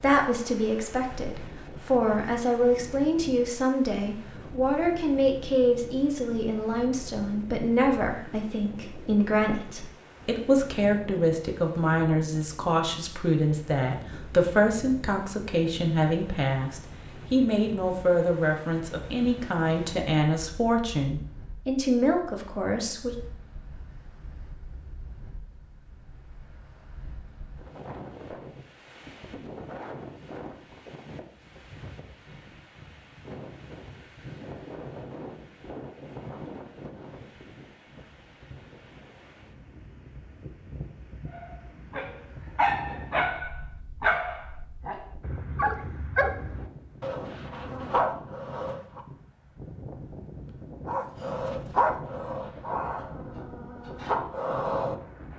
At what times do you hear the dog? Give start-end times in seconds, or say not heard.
41.3-49.0, 50.9-55.0.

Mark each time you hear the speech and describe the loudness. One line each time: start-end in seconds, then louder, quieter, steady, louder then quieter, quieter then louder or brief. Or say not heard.
0.0-23.1 steady.